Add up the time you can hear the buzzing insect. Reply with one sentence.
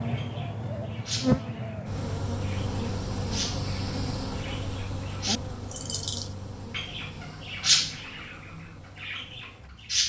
You can hear the buzzing insect for 10 seconds altogether.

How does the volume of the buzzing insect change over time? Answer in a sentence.
The volume of the buzzing insect goes down.